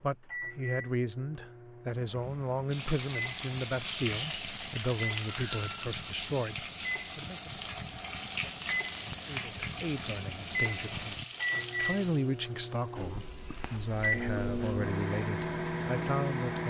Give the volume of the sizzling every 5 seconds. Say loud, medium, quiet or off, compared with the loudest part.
loud, loud, medium, off.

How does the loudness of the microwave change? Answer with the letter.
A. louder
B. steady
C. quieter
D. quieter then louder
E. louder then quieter
A.